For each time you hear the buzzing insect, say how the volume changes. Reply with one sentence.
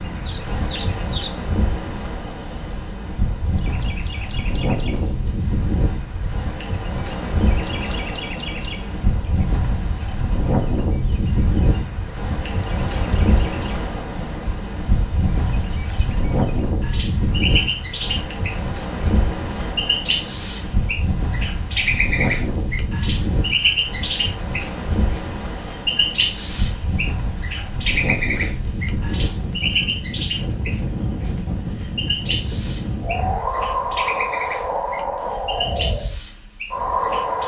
The buzzing insect can't be heard in this clip.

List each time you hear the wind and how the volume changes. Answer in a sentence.
You can hear the wind from 0.0 to 37.4 s, at a steady volume.